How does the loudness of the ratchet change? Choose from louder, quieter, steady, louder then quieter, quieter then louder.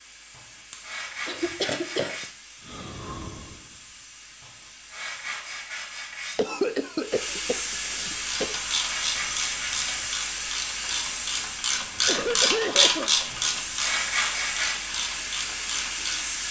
louder then quieter.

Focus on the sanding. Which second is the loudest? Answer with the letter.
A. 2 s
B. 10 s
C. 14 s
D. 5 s
C.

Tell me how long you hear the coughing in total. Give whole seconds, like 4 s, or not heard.
5 s.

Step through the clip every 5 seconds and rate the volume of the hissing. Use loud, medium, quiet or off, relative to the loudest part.
quiet, loud, loud, loud.